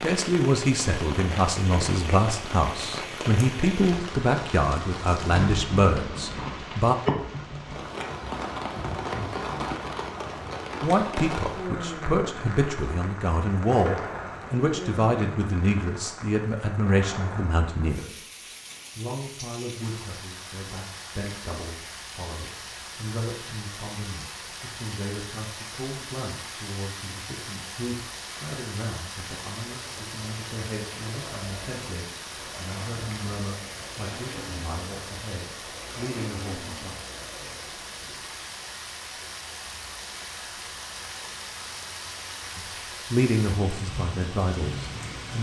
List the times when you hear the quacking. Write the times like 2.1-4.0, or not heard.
not heard.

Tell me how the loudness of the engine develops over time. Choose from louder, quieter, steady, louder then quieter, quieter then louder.
steady.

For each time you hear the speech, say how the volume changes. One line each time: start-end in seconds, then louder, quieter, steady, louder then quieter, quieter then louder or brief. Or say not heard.
0.0-7.0 steady
10.8-37.0 quieter
42.5-45.3 brief.